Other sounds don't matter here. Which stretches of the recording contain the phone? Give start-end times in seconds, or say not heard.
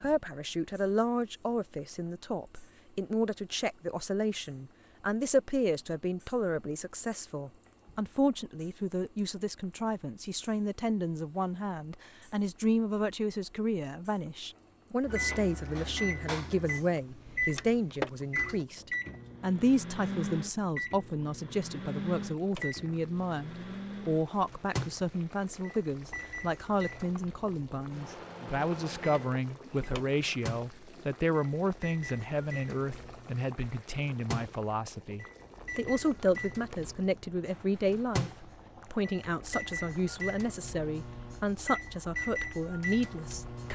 17.2-18.1.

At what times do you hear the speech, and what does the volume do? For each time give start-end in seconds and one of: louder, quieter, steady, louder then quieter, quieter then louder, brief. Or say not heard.
0.0-43.7 steady.